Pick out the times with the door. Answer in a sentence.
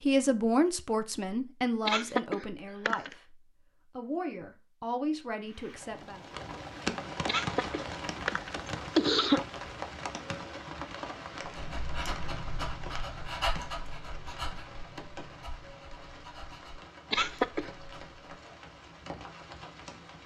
The door can't be heard in this clip.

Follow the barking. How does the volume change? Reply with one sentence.
The loudness of the barking goes down.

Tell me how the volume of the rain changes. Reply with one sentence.
The volume of the rain goes down.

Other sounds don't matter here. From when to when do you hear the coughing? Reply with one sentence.
The coughing can be heard from 1.9 to 3.1 s, from 7.2 to 9.4 s and from 17.1 to 17.7 s.